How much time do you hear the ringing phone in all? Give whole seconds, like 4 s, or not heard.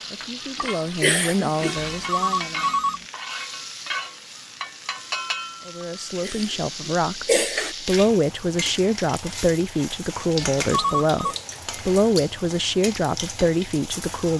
2 s.